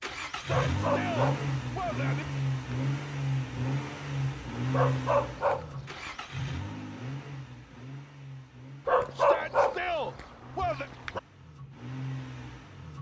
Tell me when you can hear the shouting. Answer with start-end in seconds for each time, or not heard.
0.4-2.2, 9.2-10.9.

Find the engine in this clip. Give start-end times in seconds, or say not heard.
0.0-12.9.